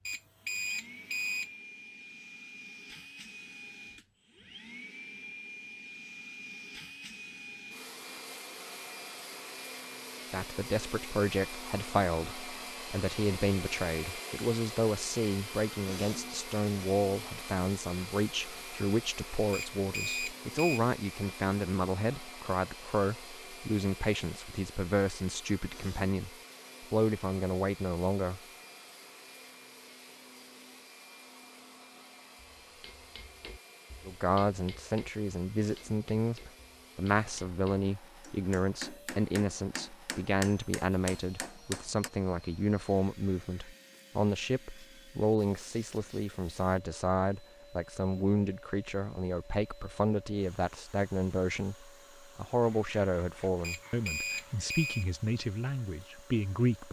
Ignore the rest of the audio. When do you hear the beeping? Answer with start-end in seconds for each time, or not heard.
0.1-1.5, 19.5-20.8, 53.6-55.0.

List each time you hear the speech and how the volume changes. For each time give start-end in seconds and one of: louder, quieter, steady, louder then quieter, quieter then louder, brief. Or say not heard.
10.3-28.4 steady
34.0-56.8 steady.